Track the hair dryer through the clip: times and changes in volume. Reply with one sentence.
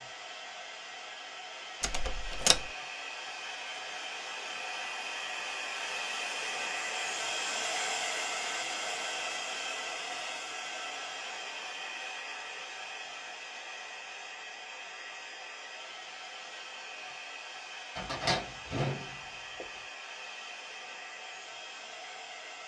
You can hear the hair dryer from 0.0 to 22.6 s, getting louder then quieter.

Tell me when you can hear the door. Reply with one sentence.
You can hear the door from 1.8 to 2.7 s and from 17.9 to 19.6 s.